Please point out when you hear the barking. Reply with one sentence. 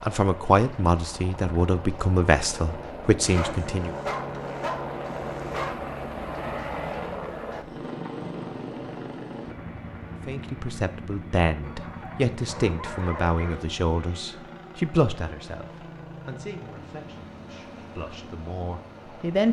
You can hear the barking from 3.2 to 5.8 s and from 11.6 to 13.7 s.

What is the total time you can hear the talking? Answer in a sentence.
You can hear the talking for 13 seconds altogether.